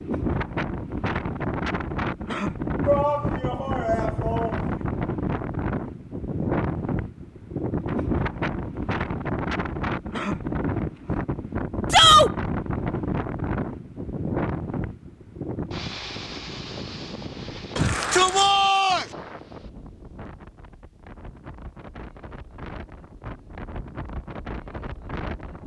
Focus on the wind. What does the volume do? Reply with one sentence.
The loudness of the wind goes down.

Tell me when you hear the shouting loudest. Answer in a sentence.
The volume of the shouting peaks at 12 seconds.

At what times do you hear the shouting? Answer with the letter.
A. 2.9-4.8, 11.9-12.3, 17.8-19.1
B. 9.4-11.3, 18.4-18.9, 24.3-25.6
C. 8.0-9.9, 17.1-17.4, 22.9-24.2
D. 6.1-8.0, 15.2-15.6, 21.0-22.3
A.